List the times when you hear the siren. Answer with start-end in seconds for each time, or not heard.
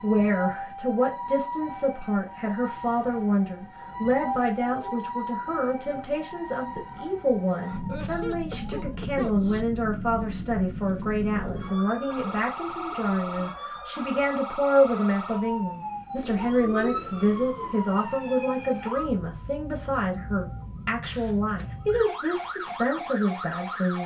0.0-24.0.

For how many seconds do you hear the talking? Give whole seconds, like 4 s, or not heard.
24 s.